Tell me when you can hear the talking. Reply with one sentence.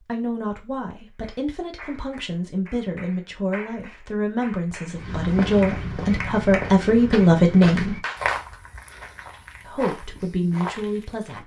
The talking can be heard from 0.0 to 8.0 s and from 9.7 to 11.4 s.